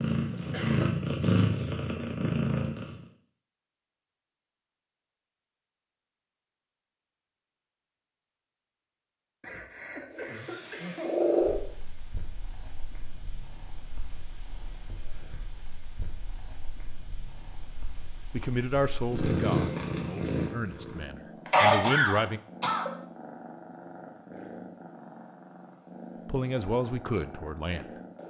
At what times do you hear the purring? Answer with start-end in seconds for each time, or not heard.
0.0-3.0, 10.1-28.2.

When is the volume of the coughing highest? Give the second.
22 s.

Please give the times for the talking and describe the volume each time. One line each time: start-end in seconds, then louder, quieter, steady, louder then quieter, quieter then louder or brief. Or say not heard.
18.3-22.4 quieter then louder
26.2-28.2 brief.